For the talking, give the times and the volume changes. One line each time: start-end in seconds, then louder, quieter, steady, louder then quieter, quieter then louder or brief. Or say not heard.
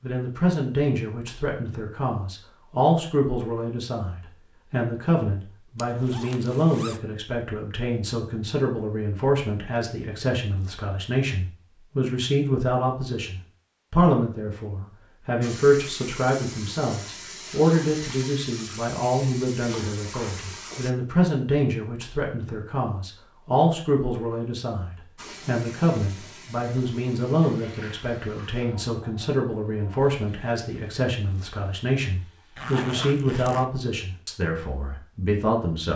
0.0-35.9 steady.